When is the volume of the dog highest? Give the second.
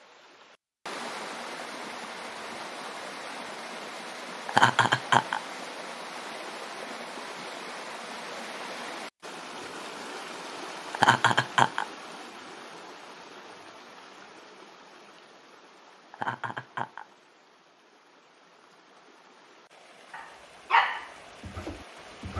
21 s.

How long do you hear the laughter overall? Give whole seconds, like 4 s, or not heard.
3 s.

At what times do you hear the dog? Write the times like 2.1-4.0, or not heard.
20.1-22.3.